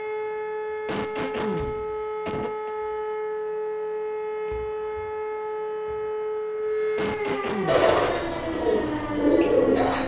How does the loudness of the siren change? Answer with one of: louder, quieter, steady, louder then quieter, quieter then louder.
steady.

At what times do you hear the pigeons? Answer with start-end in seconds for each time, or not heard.
7.7-10.0.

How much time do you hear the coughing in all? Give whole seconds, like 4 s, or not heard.
3 s.